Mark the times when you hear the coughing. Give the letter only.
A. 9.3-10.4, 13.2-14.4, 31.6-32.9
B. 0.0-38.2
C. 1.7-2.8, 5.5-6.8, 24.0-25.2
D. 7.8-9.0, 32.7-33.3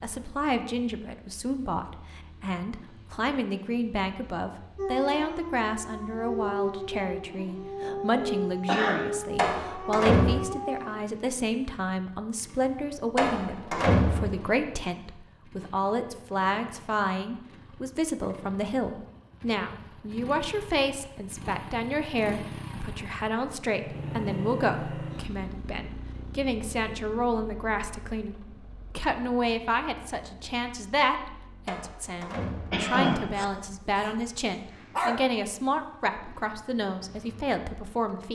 D.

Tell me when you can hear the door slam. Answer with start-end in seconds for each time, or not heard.
9.3-10.4, 13.2-14.4, 31.6-32.9.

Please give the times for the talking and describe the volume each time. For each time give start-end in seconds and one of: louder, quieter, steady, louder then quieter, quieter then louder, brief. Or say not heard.
0.0-38.2 steady.